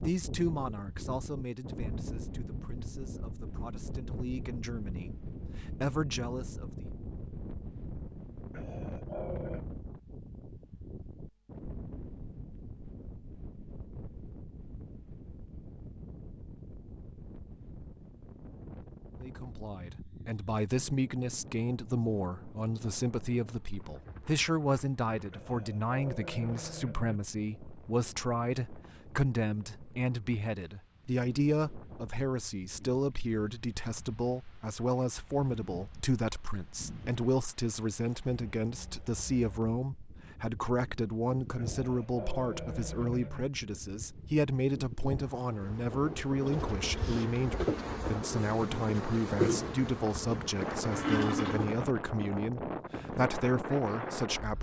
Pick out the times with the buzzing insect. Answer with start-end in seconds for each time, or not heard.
45.5-51.8.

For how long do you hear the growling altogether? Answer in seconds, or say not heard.
5 s.